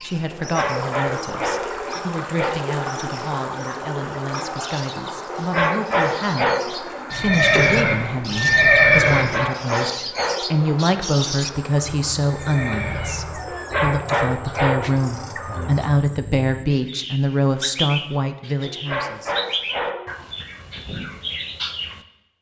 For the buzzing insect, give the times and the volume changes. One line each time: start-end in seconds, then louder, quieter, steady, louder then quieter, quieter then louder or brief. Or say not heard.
not heard.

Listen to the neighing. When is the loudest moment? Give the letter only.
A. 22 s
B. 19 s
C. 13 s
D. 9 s
D.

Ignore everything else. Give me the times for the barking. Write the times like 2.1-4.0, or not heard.
0.3-2.6, 5.2-6.9, 9.2-10.7, 13.4-15.1, 18.6-20.2.